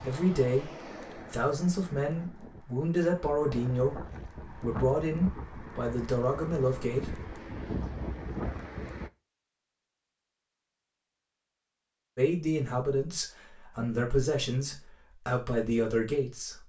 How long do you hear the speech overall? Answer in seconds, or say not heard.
11 s.